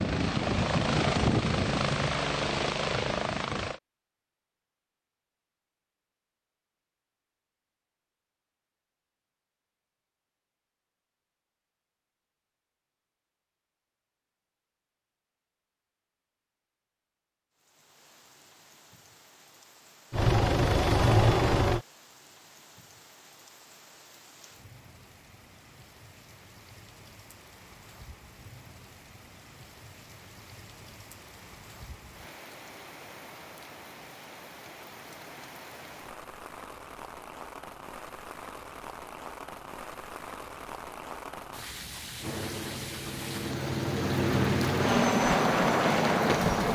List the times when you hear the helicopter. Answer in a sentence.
The helicopter can be heard from 0.0 to 3.8 s, from 20.1 to 21.9 s and from 42.2 to 46.6 s.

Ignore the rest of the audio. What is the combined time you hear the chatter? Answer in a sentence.
The chatter can't be heard in this clip.